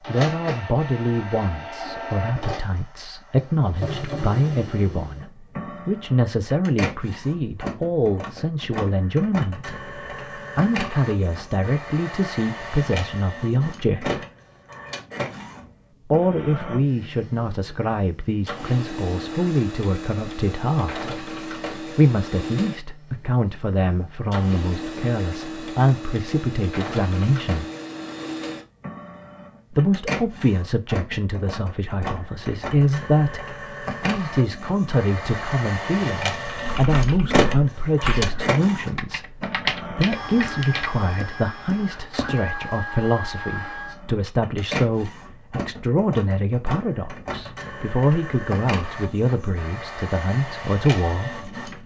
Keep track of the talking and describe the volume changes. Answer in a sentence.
The volume of the talking stays about the same.